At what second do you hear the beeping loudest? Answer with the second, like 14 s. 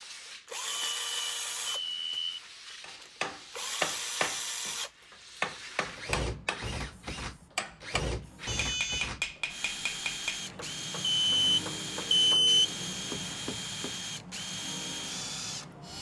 12 s.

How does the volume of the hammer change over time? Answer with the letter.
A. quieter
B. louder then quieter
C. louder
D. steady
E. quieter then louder
A.